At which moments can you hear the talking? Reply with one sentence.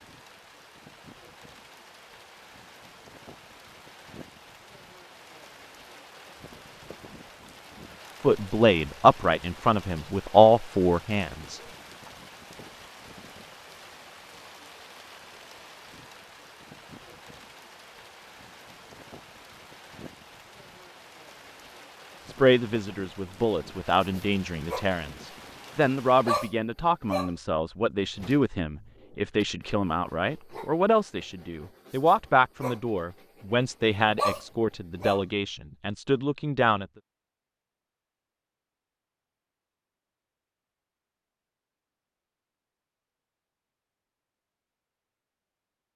The talking can be heard from 8.2 to 11.6 s and from 22.2 to 36.9 s.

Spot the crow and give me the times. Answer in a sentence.
The crow can't be heard in this clip.